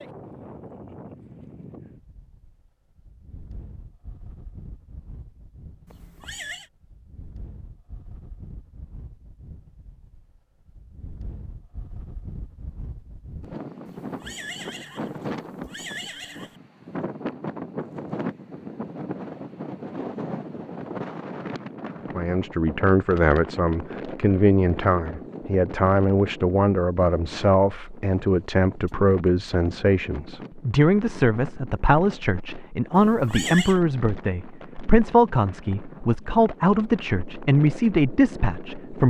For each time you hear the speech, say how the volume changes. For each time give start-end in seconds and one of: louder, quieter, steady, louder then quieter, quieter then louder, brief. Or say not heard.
22.1-39.0 steady.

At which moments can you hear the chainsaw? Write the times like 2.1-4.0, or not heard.
not heard.